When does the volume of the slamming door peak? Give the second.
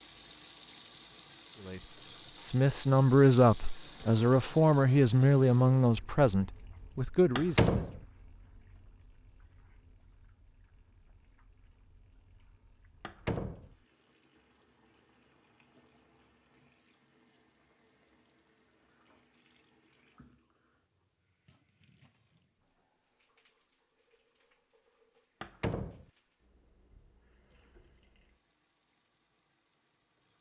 8 s.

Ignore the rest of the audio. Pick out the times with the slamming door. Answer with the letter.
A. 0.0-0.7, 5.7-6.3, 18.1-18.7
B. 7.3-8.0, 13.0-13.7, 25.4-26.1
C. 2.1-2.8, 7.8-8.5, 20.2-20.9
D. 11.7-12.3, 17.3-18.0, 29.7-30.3
B.